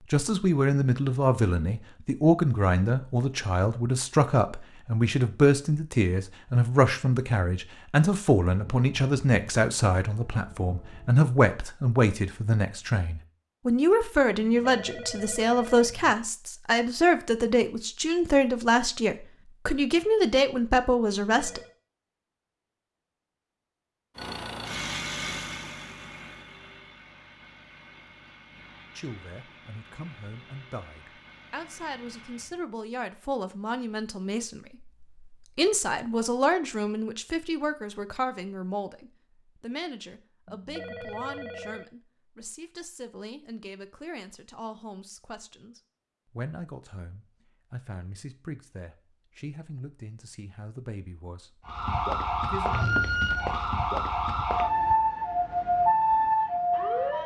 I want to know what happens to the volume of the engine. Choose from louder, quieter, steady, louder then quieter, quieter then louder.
quieter.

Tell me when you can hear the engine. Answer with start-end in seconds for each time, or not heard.
24.1-32.6.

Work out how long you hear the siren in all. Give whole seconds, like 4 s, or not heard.
8 s.